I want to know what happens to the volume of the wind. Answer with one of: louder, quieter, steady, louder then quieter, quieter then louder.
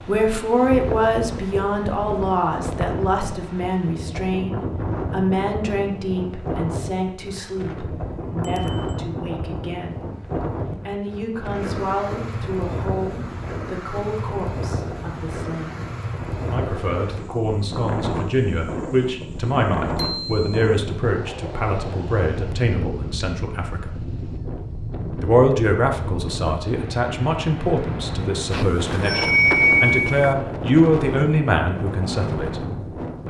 steady.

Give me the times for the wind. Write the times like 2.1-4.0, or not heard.
0.0-33.2.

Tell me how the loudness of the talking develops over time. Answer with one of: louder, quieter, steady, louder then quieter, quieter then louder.
quieter then louder.